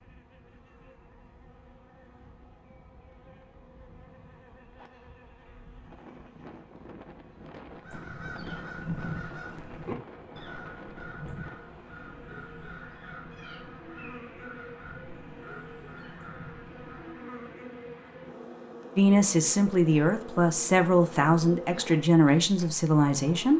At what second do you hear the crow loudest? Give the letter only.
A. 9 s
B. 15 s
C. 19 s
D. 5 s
A.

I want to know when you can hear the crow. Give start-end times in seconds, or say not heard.
7.7-17.2.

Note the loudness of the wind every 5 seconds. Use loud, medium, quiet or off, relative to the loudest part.
quiet, loud, loud, off, off.